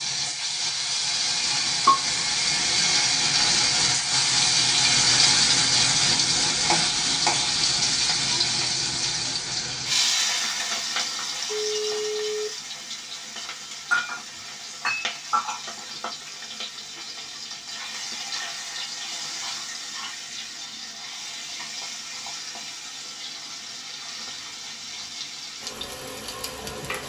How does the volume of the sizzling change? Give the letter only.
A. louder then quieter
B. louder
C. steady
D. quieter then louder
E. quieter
E.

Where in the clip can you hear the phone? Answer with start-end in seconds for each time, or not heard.
11.6-12.5.